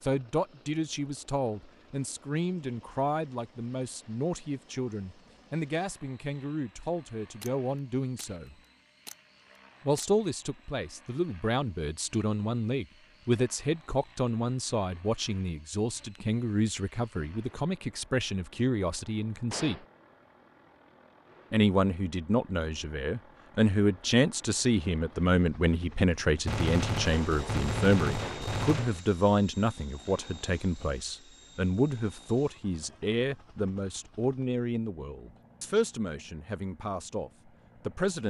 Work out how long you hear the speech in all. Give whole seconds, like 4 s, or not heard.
35 s.